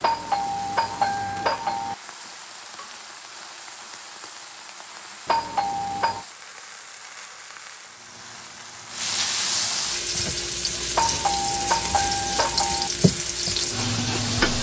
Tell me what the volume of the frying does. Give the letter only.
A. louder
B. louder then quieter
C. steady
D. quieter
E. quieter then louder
A.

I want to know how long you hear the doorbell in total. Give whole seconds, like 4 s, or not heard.
5 s.